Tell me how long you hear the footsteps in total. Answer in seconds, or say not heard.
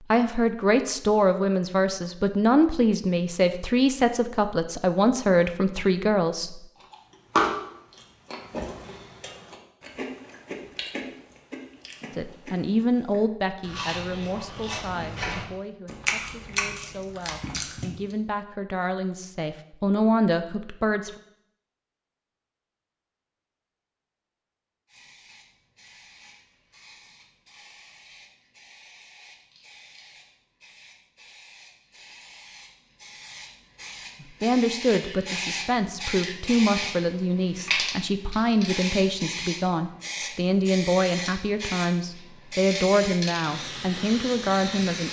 not heard.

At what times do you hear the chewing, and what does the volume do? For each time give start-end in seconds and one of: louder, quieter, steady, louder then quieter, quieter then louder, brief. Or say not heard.
6.8-18.1 quieter then louder.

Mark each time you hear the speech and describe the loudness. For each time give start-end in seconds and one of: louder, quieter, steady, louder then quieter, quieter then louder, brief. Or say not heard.
0.1-6.6 steady
12.2-21.1 quieter then louder
34.2-45.0 steady.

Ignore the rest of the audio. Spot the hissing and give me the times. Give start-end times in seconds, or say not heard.
24.9-45.0.